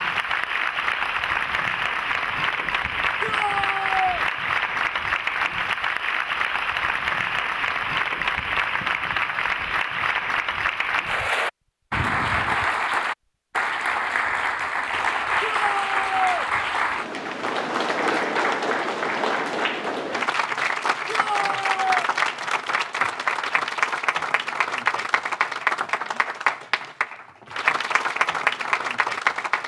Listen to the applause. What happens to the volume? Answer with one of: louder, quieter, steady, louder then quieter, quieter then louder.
steady.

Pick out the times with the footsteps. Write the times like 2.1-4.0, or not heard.
not heard.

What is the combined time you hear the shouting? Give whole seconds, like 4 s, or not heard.
3 s.